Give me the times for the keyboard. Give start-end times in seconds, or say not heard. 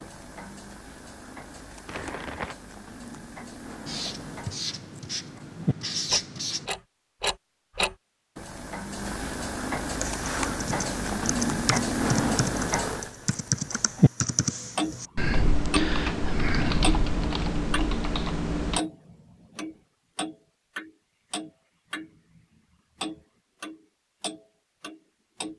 10.0-18.8.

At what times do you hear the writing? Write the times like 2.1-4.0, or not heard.
3.9-6.7.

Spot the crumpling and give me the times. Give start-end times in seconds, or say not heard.
1.9-2.5.